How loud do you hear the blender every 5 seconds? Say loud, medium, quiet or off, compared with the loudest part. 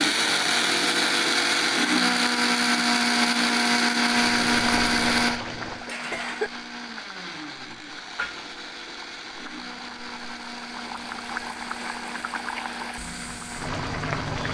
loud, medium, quiet.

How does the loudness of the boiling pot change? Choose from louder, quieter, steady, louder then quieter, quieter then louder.
quieter then louder.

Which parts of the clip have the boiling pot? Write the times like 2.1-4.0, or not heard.
4.3-14.5.